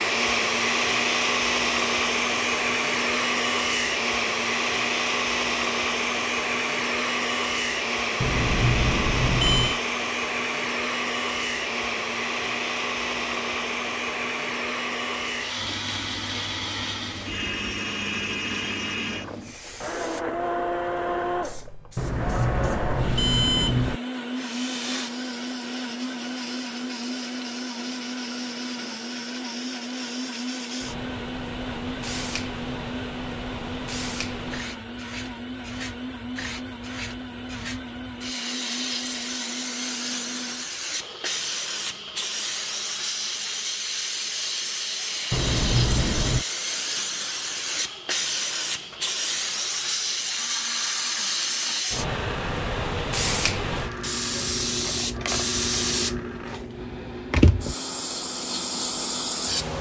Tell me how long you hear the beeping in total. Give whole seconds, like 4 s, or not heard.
5 s.